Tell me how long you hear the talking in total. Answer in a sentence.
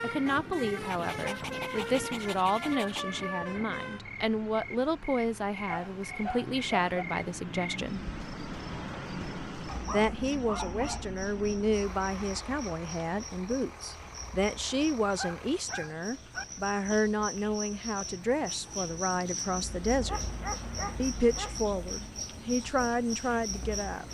You can hear the talking for 21 seconds altogether.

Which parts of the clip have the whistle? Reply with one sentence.
You can't hear the whistle here.